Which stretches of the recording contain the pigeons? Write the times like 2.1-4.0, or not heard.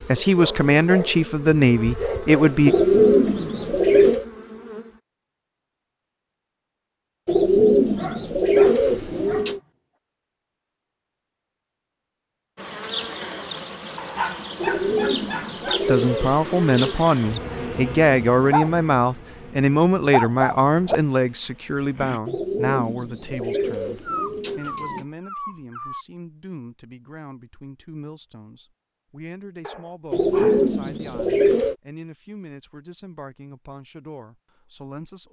2.6-4.2, 7.2-9.6, 14.6-17.1, 22.2-25.1, 30.1-31.8.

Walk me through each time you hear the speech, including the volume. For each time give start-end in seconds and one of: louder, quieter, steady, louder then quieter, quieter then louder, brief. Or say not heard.
0.1-2.8 brief
15.8-35.2 quieter.